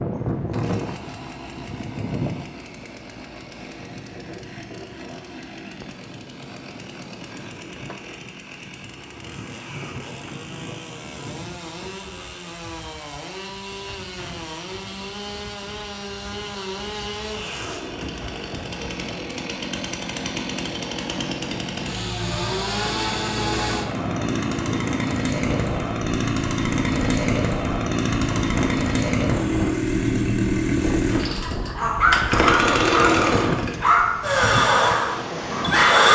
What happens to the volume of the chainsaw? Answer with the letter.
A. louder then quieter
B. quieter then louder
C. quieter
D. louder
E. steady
D.